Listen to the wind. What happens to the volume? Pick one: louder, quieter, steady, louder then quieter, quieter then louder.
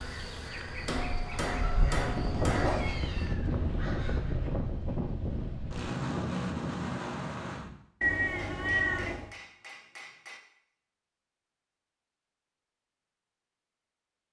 louder.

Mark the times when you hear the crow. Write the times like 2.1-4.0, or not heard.
0.0-4.3.